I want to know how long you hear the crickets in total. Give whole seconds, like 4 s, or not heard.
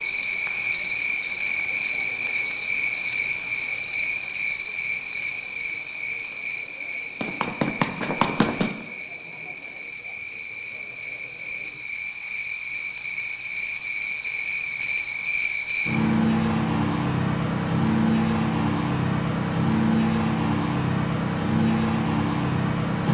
23 s.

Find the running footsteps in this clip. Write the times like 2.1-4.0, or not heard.
7.2-8.8.